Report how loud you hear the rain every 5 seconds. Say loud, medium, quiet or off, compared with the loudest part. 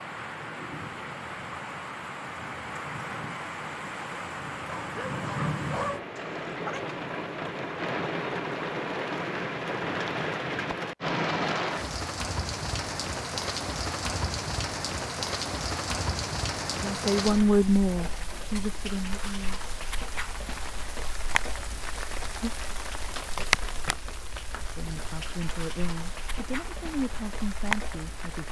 medium, loud, loud, loud, loud, medium.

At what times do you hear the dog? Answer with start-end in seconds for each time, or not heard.
4.6-6.8.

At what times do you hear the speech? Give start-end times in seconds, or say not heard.
16.8-19.6, 24.8-28.4.